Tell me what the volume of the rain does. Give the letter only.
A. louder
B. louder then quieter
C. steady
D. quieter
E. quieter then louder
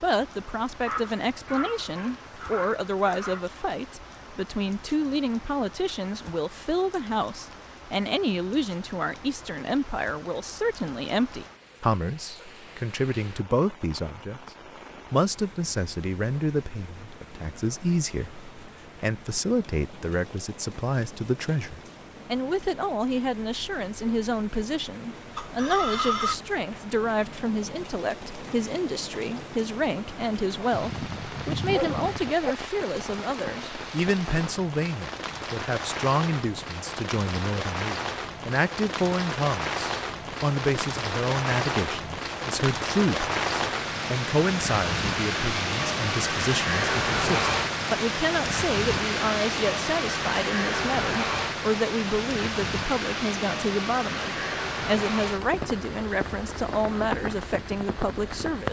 A.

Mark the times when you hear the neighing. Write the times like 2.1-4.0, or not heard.
25.4-26.4.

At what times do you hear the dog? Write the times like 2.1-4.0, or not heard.
0.8-3.4, 30.7-32.5.